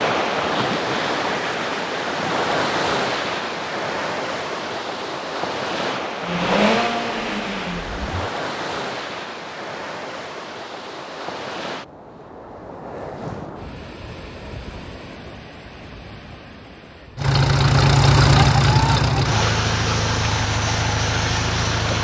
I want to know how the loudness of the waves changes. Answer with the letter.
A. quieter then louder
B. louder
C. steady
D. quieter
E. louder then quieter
D.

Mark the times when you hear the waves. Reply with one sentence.
You can hear the waves from 0.0 to 17.4 s.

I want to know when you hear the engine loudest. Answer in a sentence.
The volume of the engine peaks at 18 seconds.